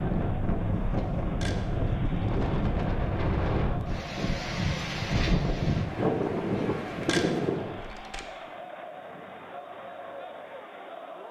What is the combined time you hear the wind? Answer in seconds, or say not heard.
8 s.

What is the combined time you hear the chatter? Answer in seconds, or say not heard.
11 s.